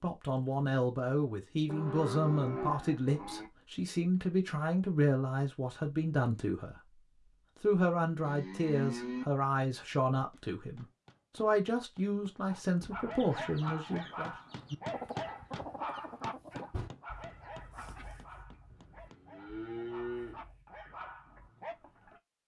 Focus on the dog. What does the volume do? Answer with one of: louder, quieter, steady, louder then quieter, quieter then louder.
quieter then louder.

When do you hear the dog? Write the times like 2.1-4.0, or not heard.
12.5-21.8.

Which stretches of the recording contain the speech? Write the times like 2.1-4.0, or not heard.
0.0-6.8, 7.6-14.3.